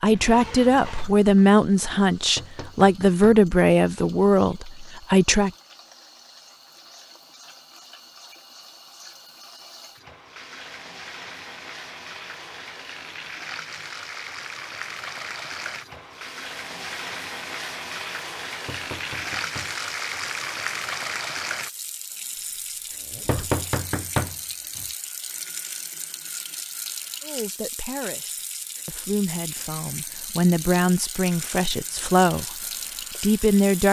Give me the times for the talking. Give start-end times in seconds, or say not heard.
0.0-5.5, 27.2-32.5, 33.2-33.8.